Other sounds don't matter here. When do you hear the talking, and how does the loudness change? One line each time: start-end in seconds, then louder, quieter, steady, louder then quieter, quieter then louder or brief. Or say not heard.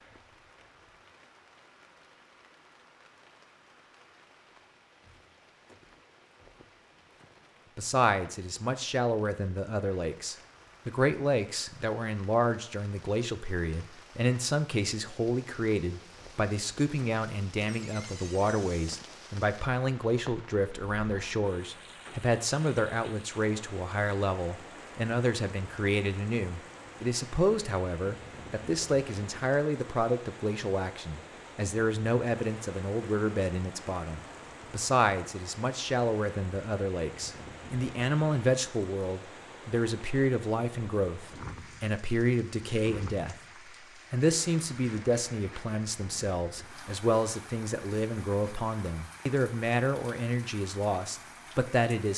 7.8-43.4 steady
44.1-52.1 steady.